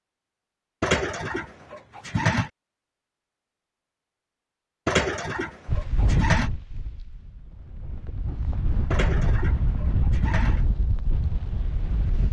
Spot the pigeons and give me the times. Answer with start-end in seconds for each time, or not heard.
0.8-2.5, 4.8-6.5, 8.9-10.7.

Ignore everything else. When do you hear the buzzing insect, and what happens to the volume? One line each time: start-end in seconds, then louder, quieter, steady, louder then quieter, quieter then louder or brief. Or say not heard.
not heard.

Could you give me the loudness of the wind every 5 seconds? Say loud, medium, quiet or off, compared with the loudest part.
off, loud, loud.